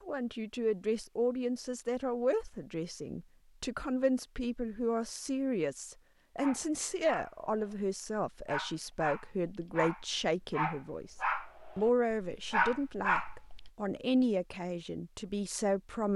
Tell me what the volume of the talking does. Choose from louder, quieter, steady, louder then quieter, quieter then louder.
steady.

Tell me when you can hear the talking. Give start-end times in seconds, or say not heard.
0.0-11.2, 11.8-16.1.